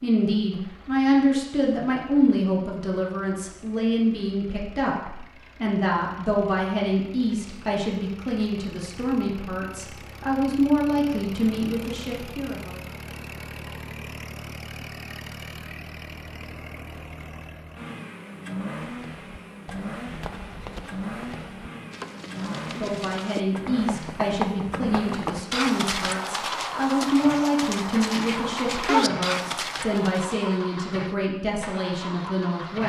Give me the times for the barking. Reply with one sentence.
The barking can't be heard in this clip.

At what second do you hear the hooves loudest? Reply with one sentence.
The volume of the hooves peaks at 29 seconds.